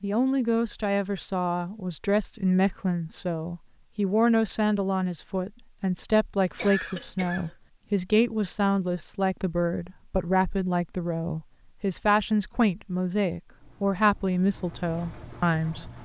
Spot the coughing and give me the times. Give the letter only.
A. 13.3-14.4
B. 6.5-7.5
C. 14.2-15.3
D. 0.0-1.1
B.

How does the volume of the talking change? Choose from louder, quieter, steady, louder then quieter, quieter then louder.
steady.